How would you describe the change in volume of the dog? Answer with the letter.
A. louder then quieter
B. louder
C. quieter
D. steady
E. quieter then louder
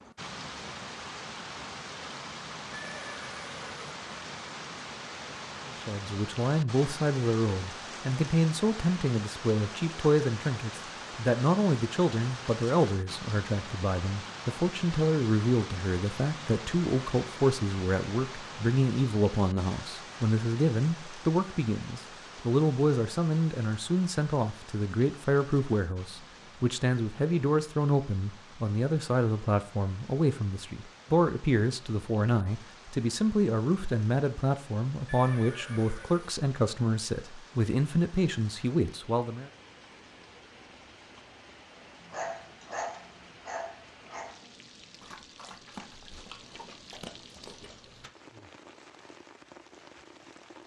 C.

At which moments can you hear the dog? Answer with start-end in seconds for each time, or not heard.
42.1-48.1.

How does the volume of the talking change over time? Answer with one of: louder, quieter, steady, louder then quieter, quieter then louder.
steady.